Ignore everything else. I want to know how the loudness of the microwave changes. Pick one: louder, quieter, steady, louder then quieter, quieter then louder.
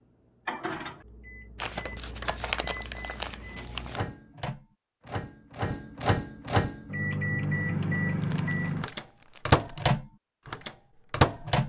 louder.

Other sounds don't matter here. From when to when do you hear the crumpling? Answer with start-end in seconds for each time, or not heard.
1.6-4.0, 8.2-9.8.